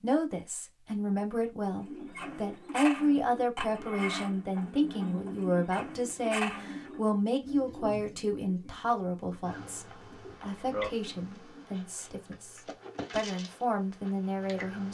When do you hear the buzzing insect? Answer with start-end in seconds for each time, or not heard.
9.4-14.9.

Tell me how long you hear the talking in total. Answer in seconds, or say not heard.
15 s.